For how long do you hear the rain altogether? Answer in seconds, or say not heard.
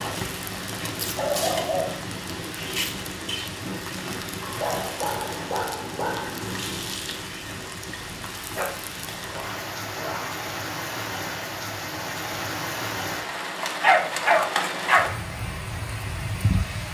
17 s.